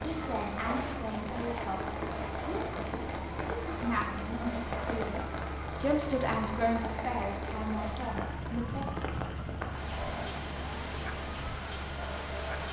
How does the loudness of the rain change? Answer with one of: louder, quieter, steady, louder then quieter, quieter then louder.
steady.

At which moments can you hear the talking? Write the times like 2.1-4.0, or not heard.
0.0-8.8.